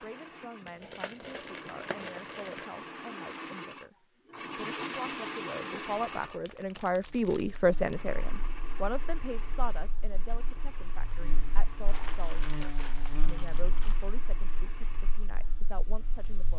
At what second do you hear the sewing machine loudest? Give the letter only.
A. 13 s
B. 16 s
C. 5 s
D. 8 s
C.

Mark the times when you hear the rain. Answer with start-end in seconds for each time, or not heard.
not heard.